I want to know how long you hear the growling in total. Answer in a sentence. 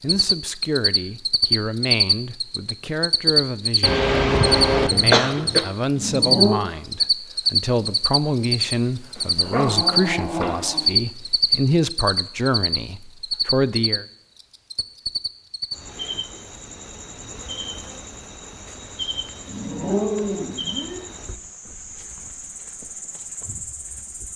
The growling can be heard for 5 seconds in total.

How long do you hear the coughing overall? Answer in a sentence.
The coughing can be heard for 2 seconds in total.